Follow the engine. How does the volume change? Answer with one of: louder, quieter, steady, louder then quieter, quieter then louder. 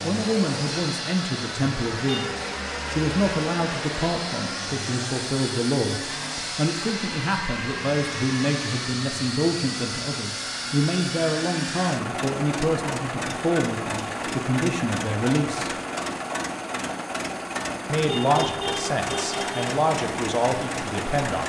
steady.